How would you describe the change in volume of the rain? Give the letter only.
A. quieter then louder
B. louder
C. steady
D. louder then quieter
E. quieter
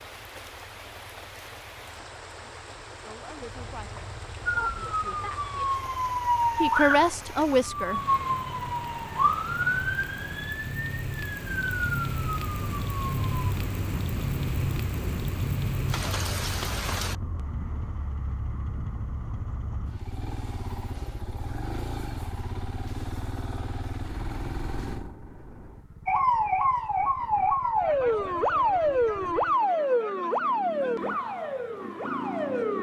B.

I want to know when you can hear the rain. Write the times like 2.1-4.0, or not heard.
0.0-17.1.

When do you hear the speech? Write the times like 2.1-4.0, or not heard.
3.0-5.8, 6.5-8.0.